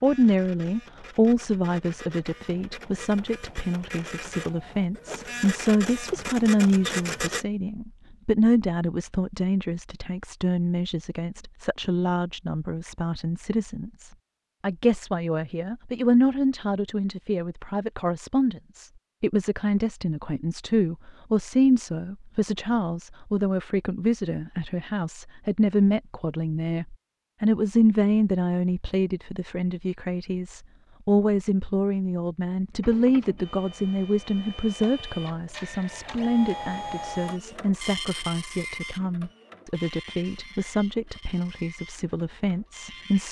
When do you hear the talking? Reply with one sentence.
You can hear the talking from 0.0 to 43.2 s.